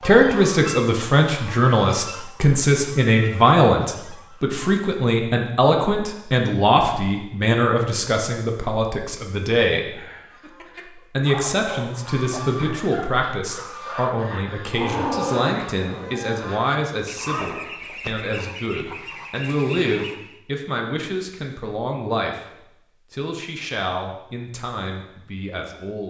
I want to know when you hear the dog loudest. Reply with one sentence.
The volume of the dog peaks at 15 seconds.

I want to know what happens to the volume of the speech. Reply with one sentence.
The loudness of the speech goes down.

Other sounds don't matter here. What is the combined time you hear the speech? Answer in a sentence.
The speech can be heard for 25 seconds in total.